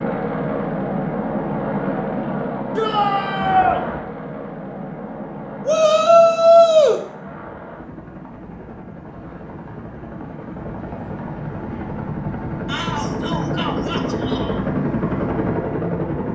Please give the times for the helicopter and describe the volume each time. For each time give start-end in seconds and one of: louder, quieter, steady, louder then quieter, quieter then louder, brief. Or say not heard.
0.0-16.2 quieter then louder.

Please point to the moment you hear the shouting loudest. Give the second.
7 s.